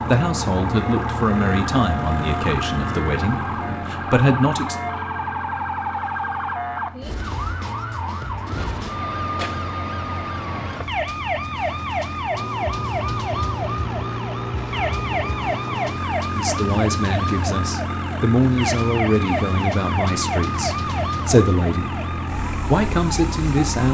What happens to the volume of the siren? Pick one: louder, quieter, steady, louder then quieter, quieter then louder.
steady.